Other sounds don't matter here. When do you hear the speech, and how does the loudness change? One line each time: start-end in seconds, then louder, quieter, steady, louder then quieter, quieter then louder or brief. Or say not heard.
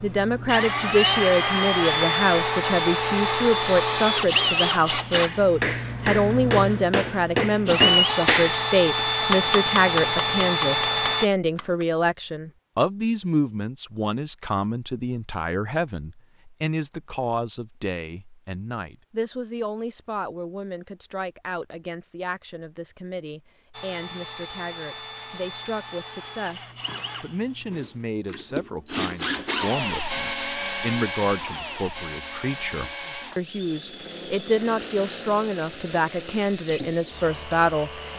0.0-38.1 quieter then louder.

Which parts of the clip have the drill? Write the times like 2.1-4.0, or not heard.
0.0-11.3, 23.7-38.1.